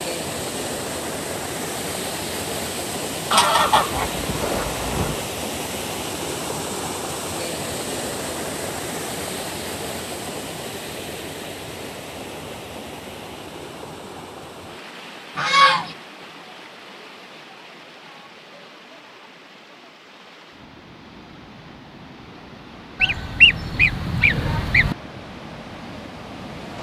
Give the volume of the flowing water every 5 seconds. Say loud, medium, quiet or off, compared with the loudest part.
loud, loud, medium, quiet, quiet, medium.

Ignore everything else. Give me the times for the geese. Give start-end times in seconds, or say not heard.
3.3-5.2, 15.3-15.9, 23.0-24.9.